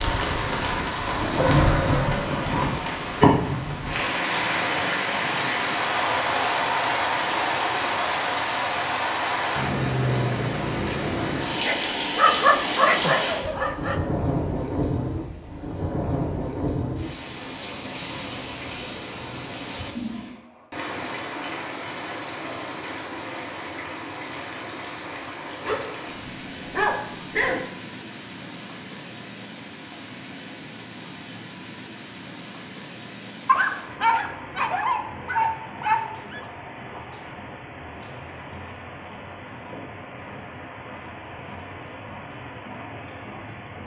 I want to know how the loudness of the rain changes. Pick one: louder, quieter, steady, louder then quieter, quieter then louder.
quieter.